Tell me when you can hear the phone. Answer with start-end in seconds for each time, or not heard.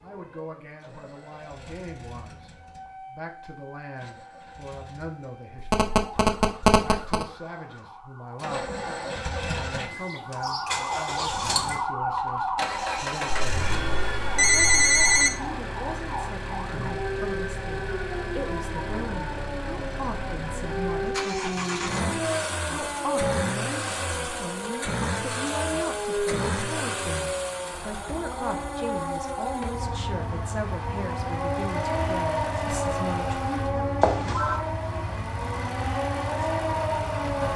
5.7-7.2, 13.3-15.3, 34.0-34.6.